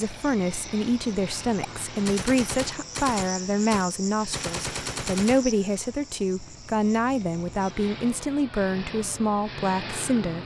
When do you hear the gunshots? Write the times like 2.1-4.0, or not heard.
1.6-5.5.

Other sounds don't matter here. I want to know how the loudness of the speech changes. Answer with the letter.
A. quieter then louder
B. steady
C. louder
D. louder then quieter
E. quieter
B.